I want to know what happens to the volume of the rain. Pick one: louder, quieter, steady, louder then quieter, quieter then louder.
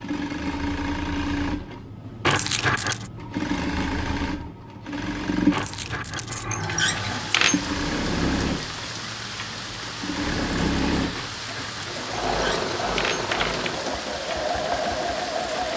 steady.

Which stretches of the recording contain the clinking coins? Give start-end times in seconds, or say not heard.
2.2-3.1, 5.5-7.6, 11.2-13.8.